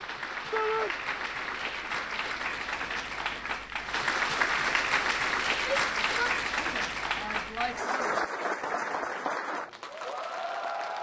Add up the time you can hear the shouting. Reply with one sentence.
You can hear the shouting for 3 seconds altogether.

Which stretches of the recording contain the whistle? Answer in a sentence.
You can't hear the whistle here.